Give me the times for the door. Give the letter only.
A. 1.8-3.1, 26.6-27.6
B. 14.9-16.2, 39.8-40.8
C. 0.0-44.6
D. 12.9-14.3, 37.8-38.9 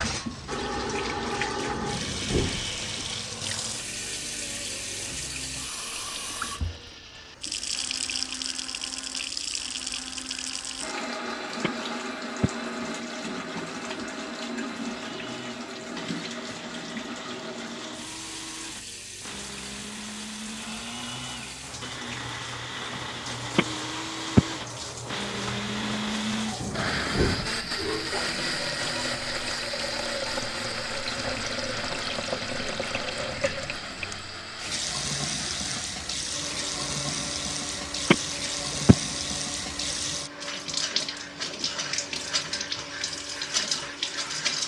A.